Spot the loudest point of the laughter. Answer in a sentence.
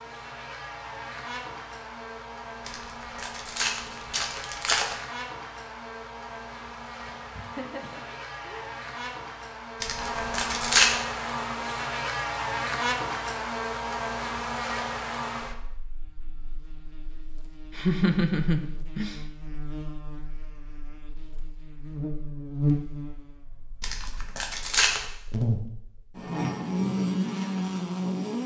The loudest moment of the laughter is at 18 seconds.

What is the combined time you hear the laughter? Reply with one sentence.
The laughter can be heard for 3 seconds in total.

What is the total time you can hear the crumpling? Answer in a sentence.
You can hear the crumpling for 5 seconds altogether.